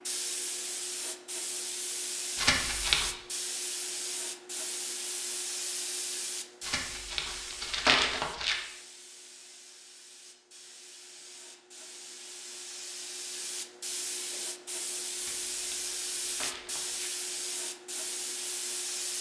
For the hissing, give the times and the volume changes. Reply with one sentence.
The hissing can be heard from 0.0 to 19.1 s, getting quieter then louder.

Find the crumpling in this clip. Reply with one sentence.
The crumpling can be heard from 2.4 to 3.1 s, from 6.6 to 8.6 s and from 15.2 to 17.1 s.